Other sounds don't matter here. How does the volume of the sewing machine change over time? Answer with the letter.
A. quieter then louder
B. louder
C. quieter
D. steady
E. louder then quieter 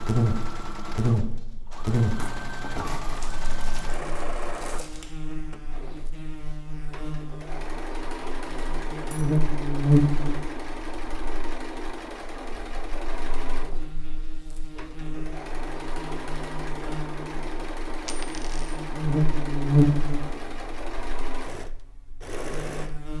D.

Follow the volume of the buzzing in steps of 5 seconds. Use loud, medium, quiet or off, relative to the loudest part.
loud, loud, medium, loud, quiet.